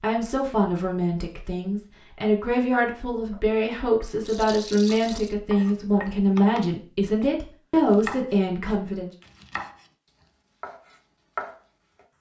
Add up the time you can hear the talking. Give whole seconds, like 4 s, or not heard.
9 s.